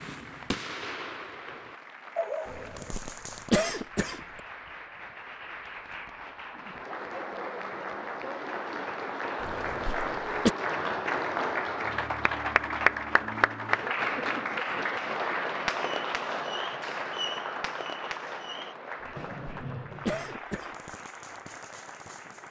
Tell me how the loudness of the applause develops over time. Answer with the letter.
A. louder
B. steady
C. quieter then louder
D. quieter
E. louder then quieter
E.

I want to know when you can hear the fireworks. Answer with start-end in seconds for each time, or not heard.
0.0-3.5, 15.6-22.4.